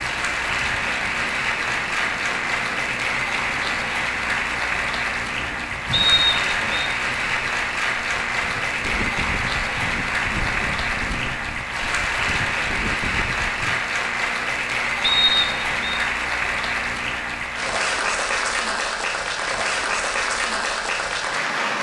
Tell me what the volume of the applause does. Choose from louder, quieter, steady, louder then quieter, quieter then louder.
steady.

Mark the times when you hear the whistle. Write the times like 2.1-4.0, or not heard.
5.9-6.9, 15.0-16.0.